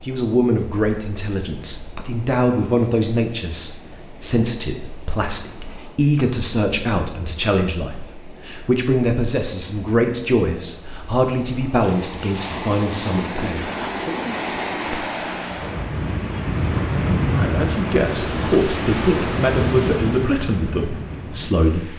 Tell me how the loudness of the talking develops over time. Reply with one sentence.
The loudness of the talking stays about the same.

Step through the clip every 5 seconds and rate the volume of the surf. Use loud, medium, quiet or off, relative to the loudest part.
quiet, quiet, medium, loud, medium.